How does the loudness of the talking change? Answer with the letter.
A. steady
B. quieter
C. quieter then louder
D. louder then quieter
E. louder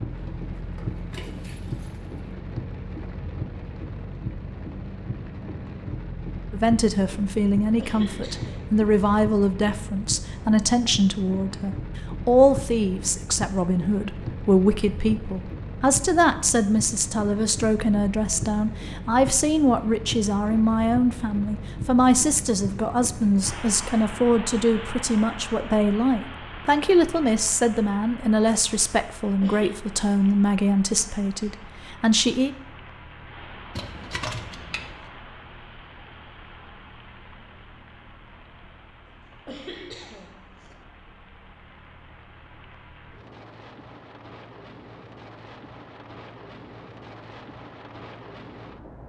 A.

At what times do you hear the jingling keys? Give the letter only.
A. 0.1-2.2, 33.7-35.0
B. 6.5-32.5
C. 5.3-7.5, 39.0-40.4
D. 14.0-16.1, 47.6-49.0
A.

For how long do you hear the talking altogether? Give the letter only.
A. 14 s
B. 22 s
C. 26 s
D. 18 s
C.